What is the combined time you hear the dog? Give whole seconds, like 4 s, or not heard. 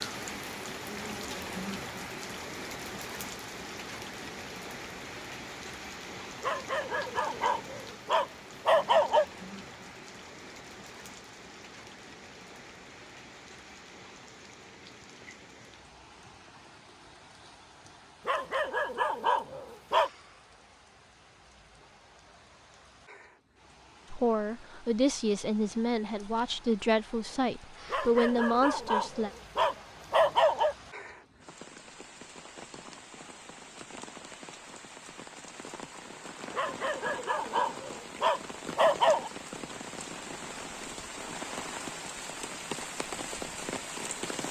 10 s.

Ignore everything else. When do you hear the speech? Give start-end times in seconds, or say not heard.
24.1-29.3.